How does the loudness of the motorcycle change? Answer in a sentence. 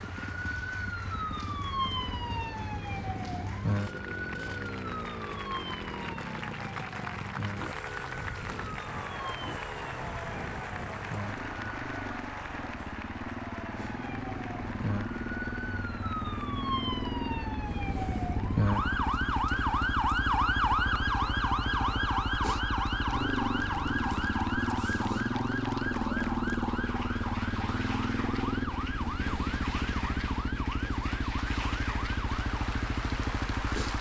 The loudness of the motorcycle goes up.